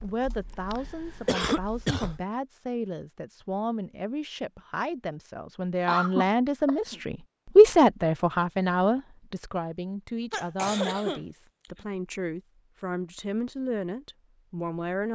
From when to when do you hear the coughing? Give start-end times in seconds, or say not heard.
1.2-2.1, 5.5-7.0, 10.3-11.8.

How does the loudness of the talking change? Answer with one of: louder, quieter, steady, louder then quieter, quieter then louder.
louder then quieter.